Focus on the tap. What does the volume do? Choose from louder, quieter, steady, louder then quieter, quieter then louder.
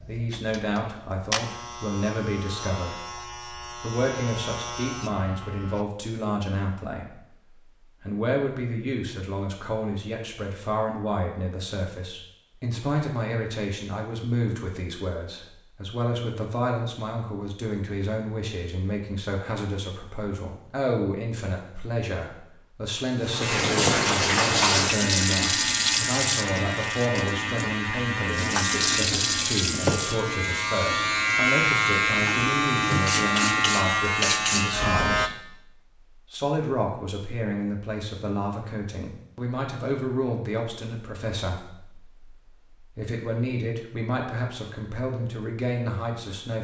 quieter.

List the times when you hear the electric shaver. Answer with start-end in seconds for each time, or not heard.
0.0-5.8, 23.4-35.3.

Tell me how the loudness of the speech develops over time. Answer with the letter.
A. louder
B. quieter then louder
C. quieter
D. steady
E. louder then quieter
D.